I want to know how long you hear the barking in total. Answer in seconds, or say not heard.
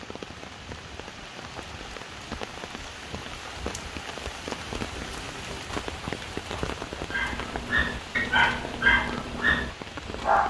3 s.